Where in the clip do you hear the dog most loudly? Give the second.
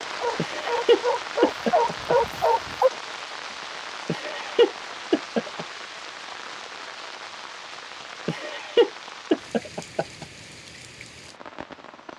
2 s.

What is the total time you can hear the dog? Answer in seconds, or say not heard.
3 s.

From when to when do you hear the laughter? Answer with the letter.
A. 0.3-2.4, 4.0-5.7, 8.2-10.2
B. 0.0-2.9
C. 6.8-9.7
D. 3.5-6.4
A.